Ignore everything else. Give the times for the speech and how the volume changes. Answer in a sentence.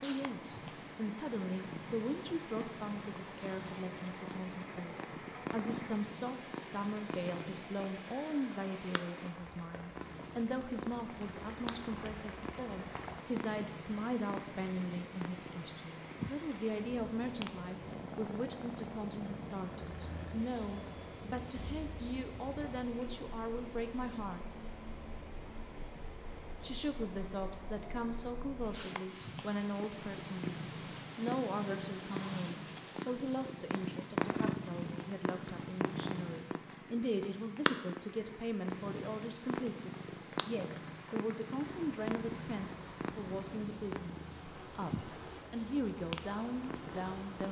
You can hear the speech from 0.0 to 24.5 s, at a steady volume; and from 26.6 to 47.4 s, at a steady volume.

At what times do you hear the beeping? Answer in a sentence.
The beeping can't be heard in this clip.